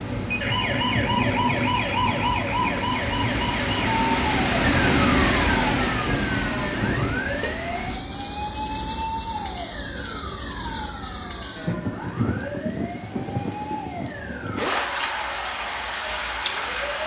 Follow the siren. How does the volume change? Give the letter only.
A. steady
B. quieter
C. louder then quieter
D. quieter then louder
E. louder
B.